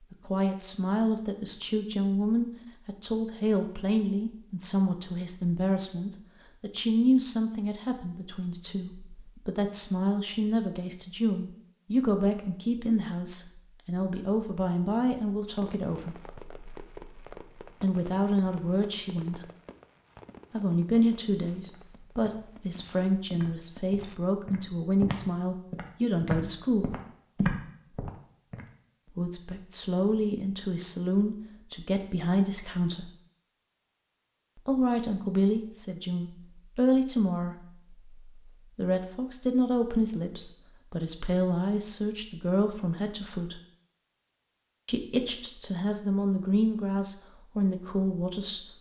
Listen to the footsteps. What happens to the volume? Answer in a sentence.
The loudness of the footsteps goes up.